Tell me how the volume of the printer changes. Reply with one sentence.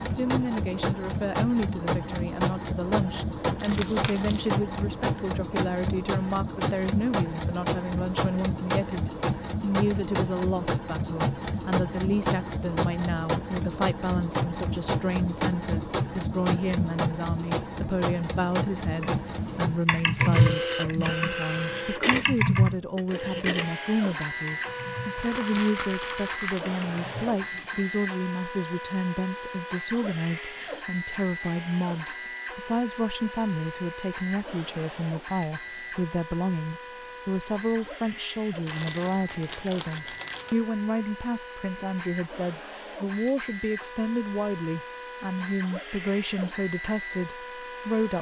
The loudness of the printer goes down.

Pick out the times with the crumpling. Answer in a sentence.
You can hear the crumpling from 3.5 to 4.5 s, from 25.1 to 26.7 s and from 38.6 to 40.5 s.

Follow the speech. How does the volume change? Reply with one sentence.
The loudness of the speech stays about the same.